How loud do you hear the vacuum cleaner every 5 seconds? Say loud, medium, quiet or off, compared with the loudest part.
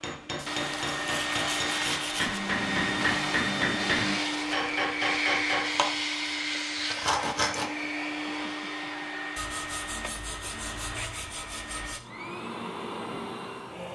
loud, loud, medium.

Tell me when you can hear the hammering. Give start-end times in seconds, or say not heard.
0.0-5.7.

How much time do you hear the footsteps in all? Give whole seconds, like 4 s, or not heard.
not heard.